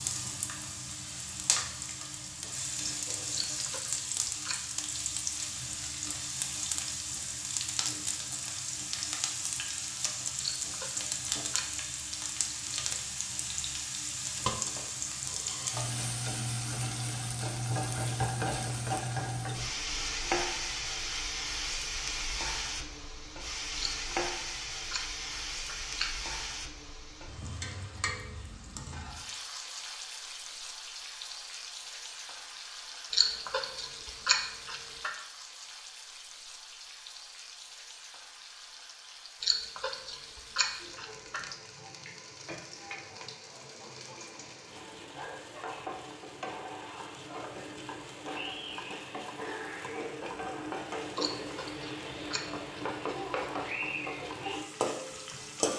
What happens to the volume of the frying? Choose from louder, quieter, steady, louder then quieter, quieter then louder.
quieter then louder.